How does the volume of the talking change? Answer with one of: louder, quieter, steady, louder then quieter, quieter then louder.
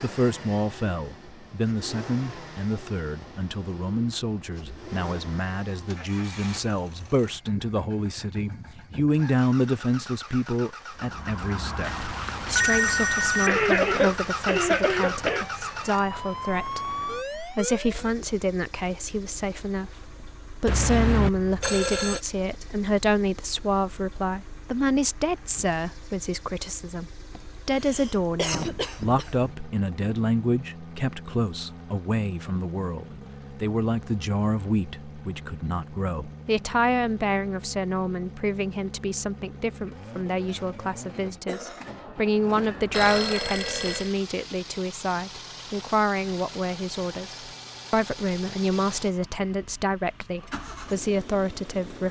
steady.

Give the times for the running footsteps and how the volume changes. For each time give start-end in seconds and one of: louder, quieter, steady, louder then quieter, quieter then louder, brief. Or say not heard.
not heard.